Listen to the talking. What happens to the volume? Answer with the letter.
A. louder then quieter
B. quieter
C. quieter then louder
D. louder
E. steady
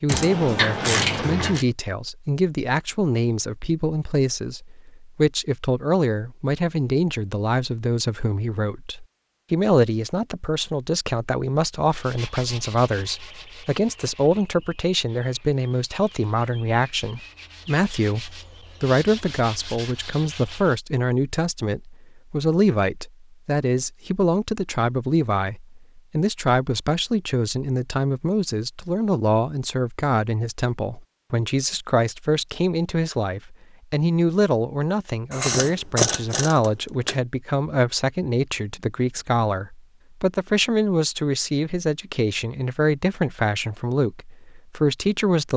E.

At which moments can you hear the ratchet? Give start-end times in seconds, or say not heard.
0.1-1.6, 35.3-37.2.